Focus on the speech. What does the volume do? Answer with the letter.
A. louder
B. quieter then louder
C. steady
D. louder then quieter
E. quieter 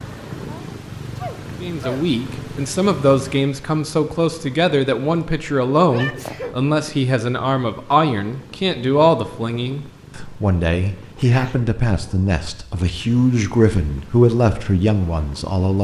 C.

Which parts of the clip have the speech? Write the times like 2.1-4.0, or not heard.
1.6-15.7.